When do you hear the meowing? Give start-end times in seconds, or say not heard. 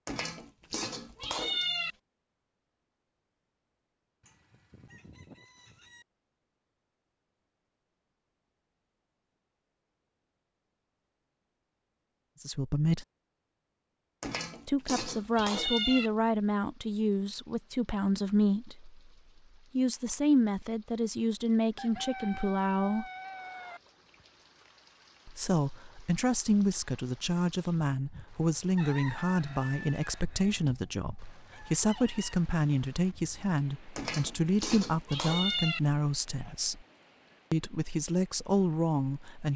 0.1-1.9, 14.2-16.1, 34.0-35.8.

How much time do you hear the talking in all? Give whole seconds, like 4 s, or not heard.
22 s.